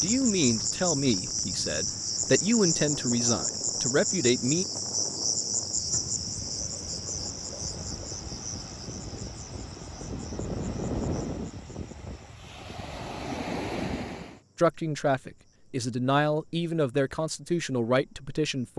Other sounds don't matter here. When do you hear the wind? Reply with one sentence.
The wind can be heard from 0.0 to 14.4 s.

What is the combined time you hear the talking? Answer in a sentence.
The talking can be heard for 9 seconds in total.